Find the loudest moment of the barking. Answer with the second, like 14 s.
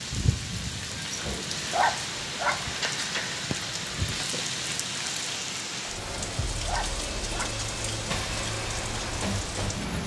2 s.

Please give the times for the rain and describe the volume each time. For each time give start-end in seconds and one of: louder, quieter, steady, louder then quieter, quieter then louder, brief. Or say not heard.
0.0-10.0 steady.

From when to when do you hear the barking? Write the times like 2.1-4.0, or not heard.
1.1-2.6, 6.2-7.6.